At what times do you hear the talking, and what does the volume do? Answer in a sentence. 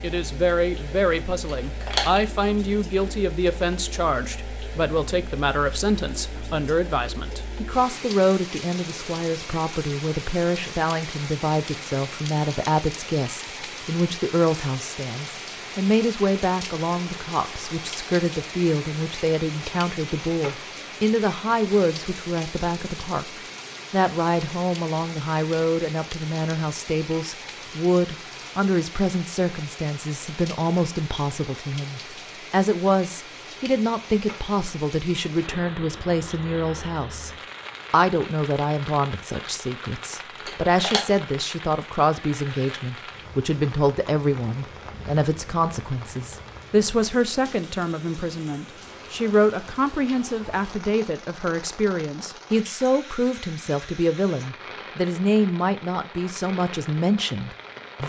You can hear the talking from 0.0 to 37.3 s, at a steady volume; and from 37.9 to 58.0 s, at a steady volume.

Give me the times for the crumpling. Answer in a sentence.
You can hear the crumpling from 1.6 to 2.2 s and from 40.5 to 41.0 s.